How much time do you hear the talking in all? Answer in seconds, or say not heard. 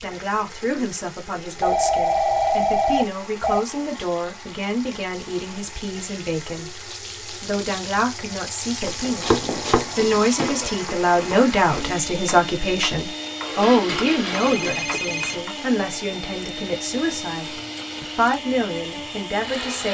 20 s.